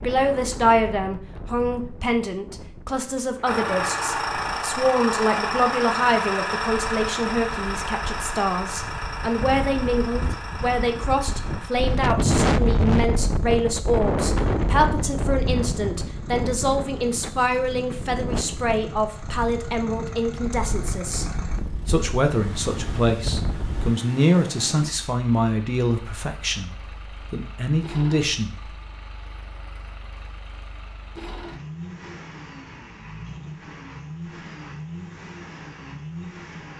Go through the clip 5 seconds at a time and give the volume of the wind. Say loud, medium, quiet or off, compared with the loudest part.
quiet, quiet, loud, medium, medium, off, off, off.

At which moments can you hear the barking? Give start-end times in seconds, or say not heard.
not heard.